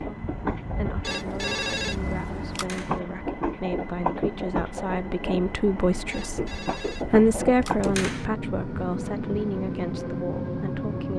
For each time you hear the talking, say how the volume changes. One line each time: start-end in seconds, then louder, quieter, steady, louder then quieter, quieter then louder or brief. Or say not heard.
0.0-11.1 louder then quieter.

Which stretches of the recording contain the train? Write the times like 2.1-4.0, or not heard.
0.0-11.1.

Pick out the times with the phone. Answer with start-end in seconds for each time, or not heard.
1.0-2.7, 6.1-8.1.